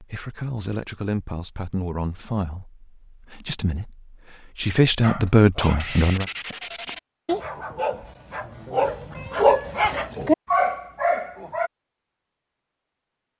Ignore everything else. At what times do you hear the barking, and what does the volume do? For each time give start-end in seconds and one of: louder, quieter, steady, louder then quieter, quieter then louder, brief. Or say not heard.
5.0-11.7 louder.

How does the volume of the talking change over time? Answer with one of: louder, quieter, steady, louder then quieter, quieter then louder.
quieter then louder.